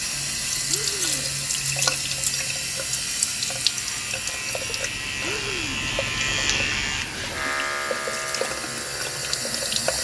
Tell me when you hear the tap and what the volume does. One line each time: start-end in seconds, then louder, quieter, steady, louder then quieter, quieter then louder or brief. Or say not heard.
0.0-9.9 quieter then louder.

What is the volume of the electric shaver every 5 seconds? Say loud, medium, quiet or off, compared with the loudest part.
medium, loud.